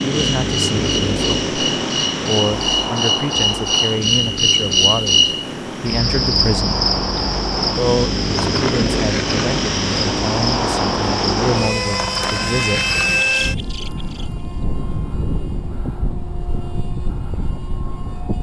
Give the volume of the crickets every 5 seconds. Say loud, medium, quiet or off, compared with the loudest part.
loud, loud, medium, off.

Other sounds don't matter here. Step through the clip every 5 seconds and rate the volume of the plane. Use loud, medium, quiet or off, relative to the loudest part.
loud, loud, loud, medium.